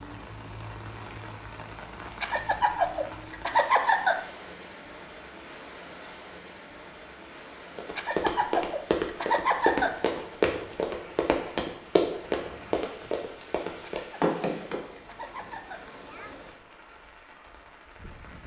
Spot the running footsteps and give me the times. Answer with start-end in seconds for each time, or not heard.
7.8-14.8.